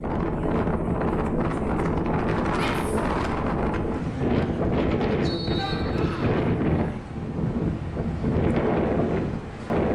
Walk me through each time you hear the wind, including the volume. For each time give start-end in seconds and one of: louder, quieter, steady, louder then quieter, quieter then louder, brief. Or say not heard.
0.0-9.9 steady.